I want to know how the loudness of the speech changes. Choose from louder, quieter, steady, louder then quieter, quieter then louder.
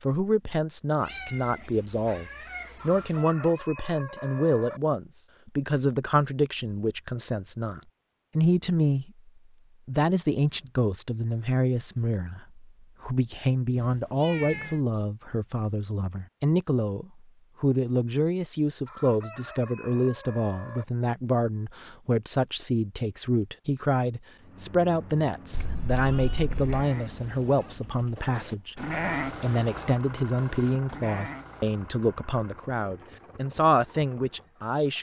steady.